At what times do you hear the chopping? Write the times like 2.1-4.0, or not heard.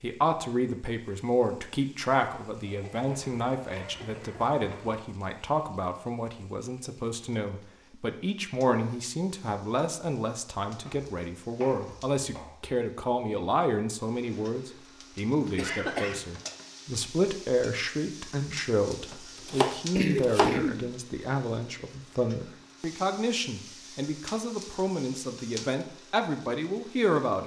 3.0-5.0, 10.8-12.7, 19.1-20.6.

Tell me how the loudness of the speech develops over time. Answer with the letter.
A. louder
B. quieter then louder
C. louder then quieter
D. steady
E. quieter
D.